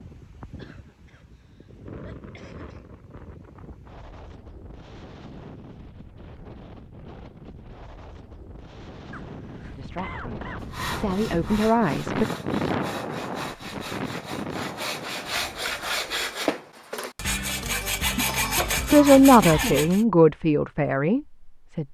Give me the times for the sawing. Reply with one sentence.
You can hear the sawing from 10.6 to 20.1 s.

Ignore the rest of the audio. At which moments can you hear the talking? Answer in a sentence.
The talking can be heard from 9.8 to 12.2 s and from 18.9 to 21.8 s.